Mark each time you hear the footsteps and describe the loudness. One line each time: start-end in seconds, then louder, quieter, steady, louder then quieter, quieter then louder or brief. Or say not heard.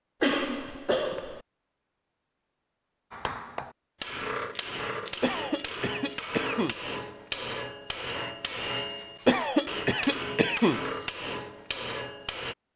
not heard.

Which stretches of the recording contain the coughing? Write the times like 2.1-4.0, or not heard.
0.2-1.4, 5.2-6.8, 9.2-10.8.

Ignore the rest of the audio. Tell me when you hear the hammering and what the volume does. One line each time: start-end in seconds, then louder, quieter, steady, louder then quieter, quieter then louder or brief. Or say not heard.
3.1-12.6 steady.